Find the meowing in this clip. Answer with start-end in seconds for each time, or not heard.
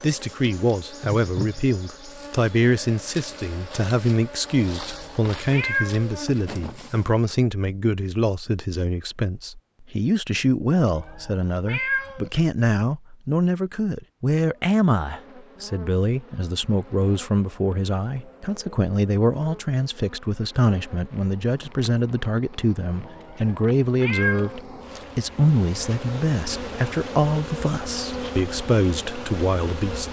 4.8-6.2, 10.8-12.3, 23.1-24.6.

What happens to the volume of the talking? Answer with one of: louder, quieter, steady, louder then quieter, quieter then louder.
steady.